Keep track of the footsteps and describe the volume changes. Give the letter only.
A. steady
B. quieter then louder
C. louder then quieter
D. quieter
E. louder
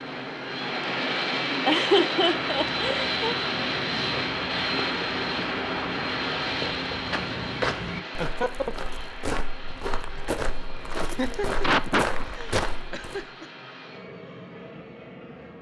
E.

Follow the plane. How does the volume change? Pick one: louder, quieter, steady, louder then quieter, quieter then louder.
quieter.